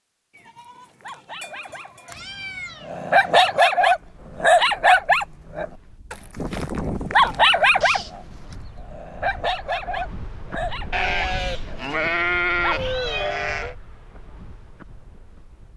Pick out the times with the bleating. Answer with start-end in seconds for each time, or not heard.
0.3-2.2, 6.3-8.2, 10.9-13.8.